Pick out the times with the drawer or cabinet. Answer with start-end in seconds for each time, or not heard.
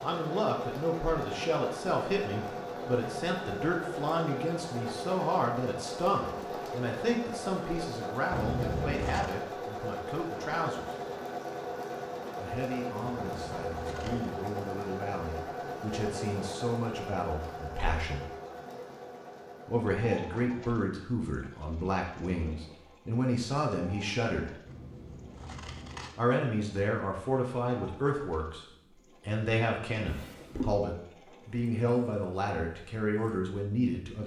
30.1-30.8.